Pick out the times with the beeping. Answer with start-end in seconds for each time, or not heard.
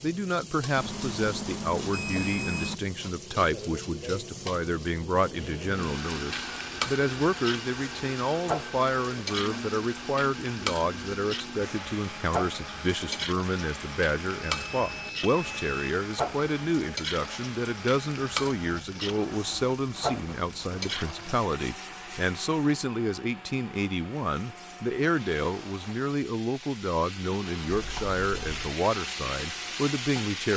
0.8-2.8, 14.4-15.7, 27.7-28.8.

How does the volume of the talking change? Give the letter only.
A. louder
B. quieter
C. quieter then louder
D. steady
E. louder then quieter
D.